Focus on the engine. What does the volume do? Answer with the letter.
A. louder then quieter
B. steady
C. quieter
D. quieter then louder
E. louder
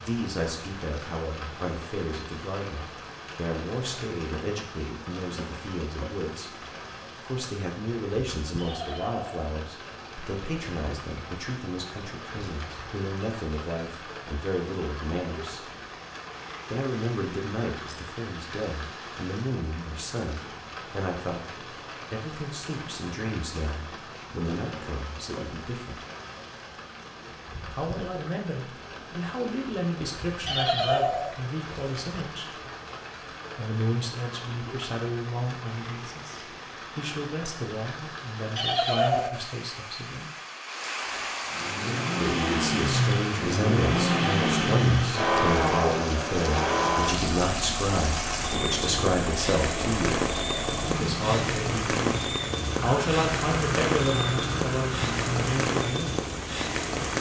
C.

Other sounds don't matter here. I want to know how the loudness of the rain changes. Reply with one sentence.
The loudness of the rain goes up.